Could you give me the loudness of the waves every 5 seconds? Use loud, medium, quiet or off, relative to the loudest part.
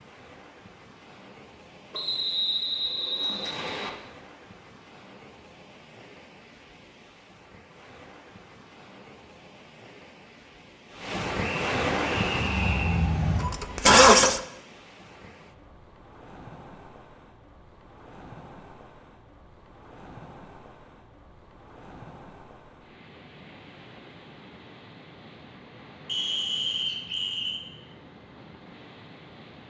quiet, quiet, loud, quiet, quiet, quiet.